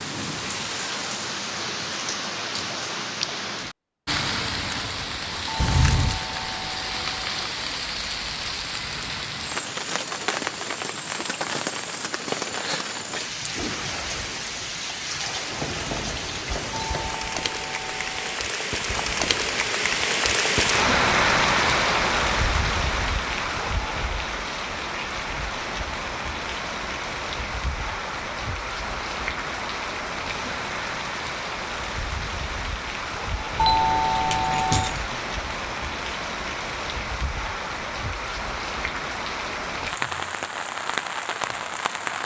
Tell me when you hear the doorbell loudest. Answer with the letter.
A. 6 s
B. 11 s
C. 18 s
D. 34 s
D.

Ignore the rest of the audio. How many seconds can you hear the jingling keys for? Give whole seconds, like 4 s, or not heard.
2 s.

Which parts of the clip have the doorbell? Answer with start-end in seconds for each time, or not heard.
5.5-7.5, 16.7-18.2, 33.5-35.0.